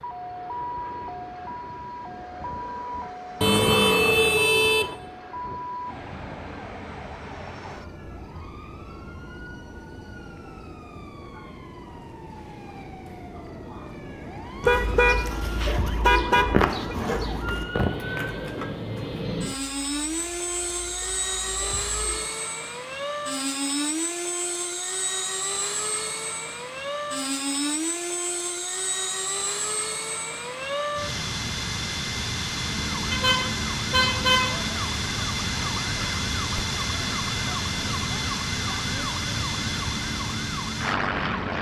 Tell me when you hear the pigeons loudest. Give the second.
17 s.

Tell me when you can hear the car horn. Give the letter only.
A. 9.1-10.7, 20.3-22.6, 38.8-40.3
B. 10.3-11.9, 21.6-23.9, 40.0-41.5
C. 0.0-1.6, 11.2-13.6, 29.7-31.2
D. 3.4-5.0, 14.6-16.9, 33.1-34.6
D.